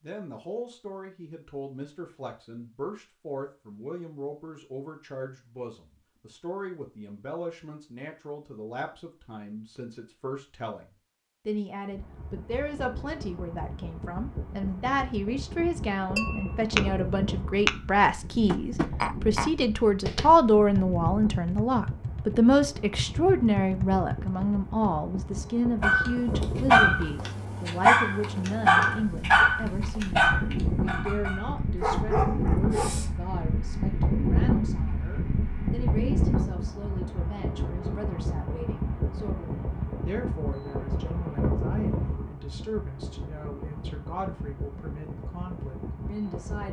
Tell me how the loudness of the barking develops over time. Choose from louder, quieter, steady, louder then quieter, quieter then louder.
quieter.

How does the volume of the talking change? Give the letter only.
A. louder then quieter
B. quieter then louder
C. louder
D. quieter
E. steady
A.